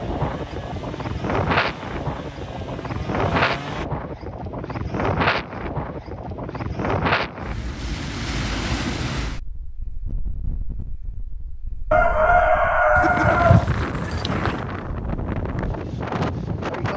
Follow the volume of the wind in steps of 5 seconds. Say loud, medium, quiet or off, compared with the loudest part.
loud, loud, medium, loud.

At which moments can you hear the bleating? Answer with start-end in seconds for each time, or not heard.
12.9-14.6.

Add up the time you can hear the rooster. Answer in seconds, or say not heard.
2 s.